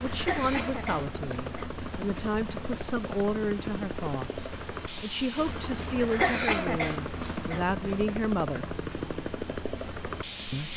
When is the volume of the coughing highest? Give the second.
6 s.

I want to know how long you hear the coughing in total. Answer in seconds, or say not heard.
3 s.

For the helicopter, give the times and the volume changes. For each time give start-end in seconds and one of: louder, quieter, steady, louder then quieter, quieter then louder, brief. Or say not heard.
0.0-10.7 steady.